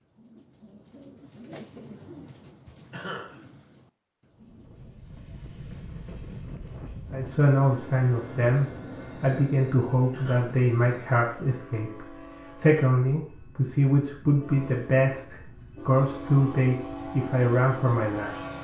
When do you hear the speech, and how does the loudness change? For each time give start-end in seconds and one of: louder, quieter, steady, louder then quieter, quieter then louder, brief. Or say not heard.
7.1-18.4 steady.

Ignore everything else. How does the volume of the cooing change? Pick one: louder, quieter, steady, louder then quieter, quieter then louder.
louder then quieter.